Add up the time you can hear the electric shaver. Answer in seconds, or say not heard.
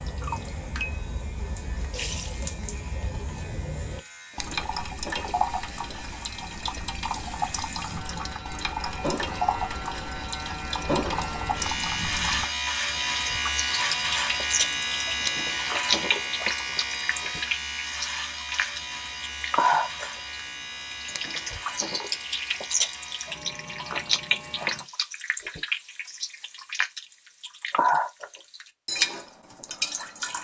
25 s.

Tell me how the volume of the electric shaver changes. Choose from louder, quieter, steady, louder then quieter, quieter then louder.
louder then quieter.